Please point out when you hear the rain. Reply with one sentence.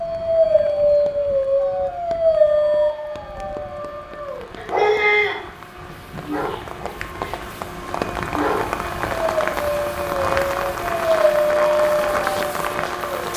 You can hear the rain from 0.0 to 13.3 s.